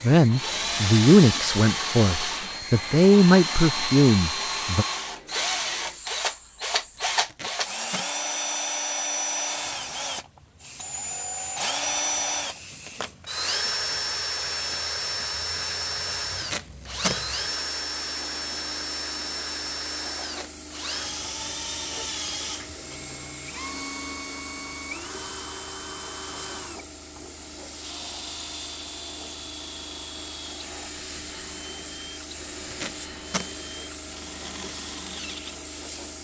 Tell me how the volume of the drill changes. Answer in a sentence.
The loudness of the drill goes down.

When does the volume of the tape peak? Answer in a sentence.
The volume of the tape peaks at 17 seconds.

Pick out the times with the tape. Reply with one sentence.
The tape can be heard from 7.0 to 8.1 s, from 16.2 to 17.2 s and from 32.6 to 33.5 s.